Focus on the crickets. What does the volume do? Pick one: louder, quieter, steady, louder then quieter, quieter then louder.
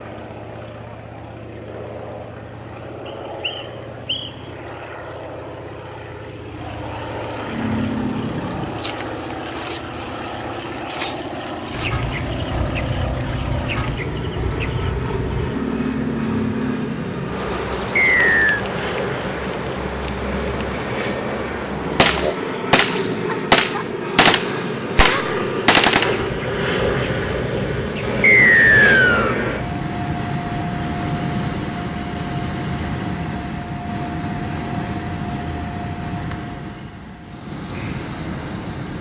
quieter.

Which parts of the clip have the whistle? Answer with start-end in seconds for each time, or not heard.
3.0-4.3, 17.9-18.6, 28.2-29.4.